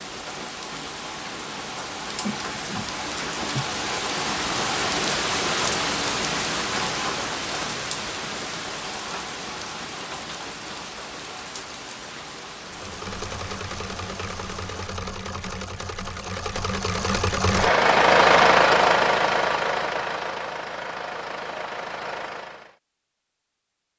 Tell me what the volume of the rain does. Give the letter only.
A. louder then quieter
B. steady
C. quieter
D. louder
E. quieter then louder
A.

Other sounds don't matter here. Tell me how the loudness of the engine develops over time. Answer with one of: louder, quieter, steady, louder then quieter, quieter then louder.
louder then quieter.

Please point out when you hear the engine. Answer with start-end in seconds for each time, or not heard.
12.7-22.8.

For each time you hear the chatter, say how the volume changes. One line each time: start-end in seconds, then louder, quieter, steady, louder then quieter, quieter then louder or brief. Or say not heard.
not heard.